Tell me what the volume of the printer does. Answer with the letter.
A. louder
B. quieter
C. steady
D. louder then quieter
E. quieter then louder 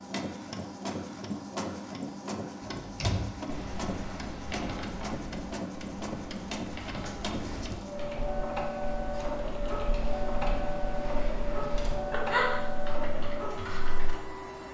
C.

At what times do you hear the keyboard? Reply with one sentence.
The keyboard can be heard from 2.8 to 14.2 s.